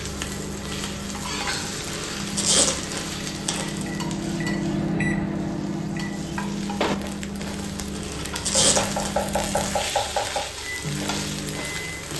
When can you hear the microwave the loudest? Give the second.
5 s.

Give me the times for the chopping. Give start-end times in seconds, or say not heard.
8.5-10.4.